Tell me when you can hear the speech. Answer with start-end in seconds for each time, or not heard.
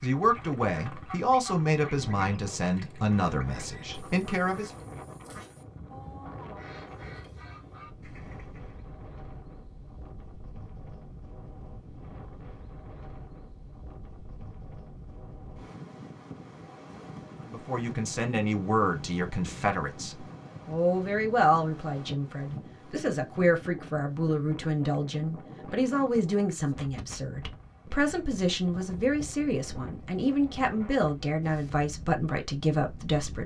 0.0-4.7, 17.4-33.4.